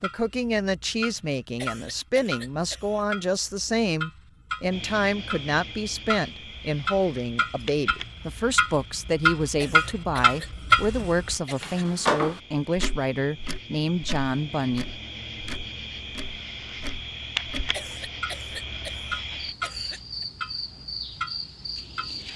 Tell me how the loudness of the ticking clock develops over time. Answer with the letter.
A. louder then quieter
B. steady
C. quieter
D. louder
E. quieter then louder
A.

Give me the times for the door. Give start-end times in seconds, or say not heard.
not heard.